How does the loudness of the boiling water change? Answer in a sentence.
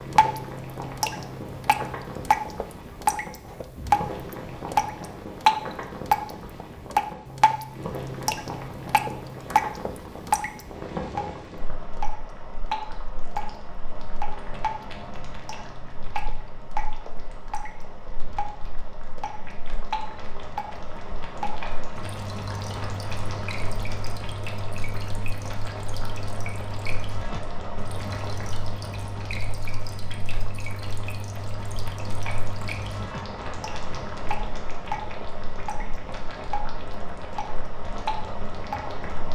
The loudness of the boiling water stays about the same.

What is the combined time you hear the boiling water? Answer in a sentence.
You can hear the boiling water for 39 seconds altogether.